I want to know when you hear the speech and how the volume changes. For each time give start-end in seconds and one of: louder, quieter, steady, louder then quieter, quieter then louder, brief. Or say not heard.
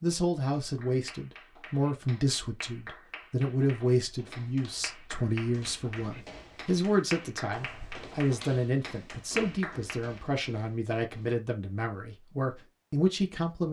0.0-13.6 steady.